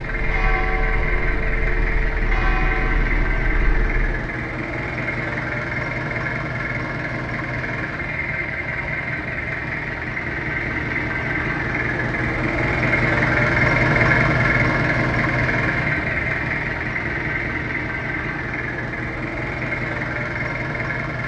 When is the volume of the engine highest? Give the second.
14 s.